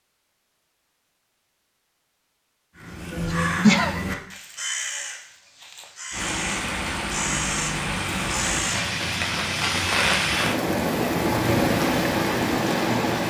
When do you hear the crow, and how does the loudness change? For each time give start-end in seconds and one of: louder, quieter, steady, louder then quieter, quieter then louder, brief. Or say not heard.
2.8-8.8 quieter then louder.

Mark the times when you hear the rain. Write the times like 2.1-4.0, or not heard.
6.1-13.2.